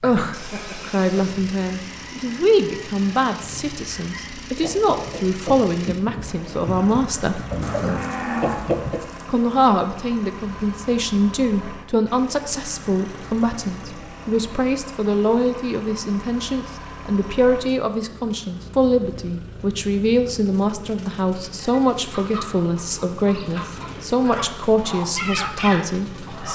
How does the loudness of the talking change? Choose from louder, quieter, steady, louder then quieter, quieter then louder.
steady.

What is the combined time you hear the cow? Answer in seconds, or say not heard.
2 s.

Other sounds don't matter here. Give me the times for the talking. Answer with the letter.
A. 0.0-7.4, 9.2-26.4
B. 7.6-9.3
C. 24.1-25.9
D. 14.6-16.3
A.